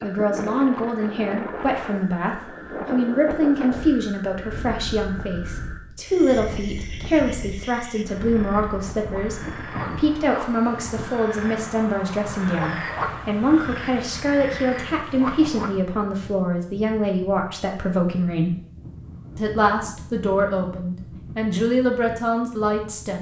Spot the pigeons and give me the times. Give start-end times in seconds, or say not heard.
not heard.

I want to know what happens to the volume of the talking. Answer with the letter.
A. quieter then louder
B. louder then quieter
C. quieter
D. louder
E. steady
E.